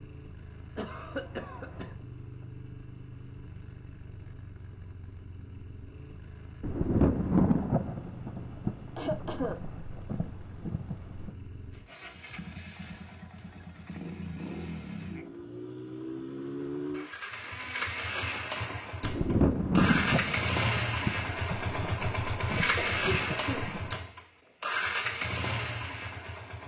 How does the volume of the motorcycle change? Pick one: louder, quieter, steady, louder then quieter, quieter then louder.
louder.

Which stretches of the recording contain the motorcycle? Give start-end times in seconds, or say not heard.
0.0-26.6.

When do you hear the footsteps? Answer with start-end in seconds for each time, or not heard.
not heard.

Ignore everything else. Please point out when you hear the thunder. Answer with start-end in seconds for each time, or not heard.
6.6-11.3, 19.0-23.9.